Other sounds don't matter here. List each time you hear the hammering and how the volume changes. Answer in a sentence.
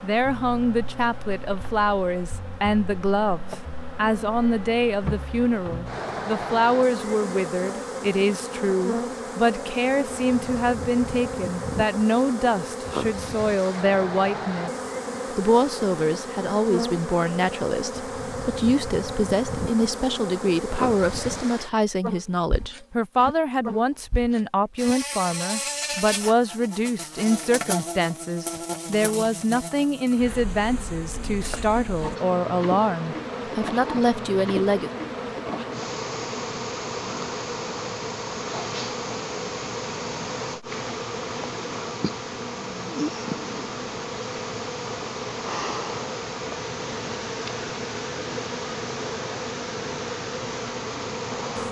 You can't hear the hammering here.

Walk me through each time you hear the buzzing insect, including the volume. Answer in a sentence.
The buzzing insect can be heard from 0.0 to 51.6 s, at a steady volume.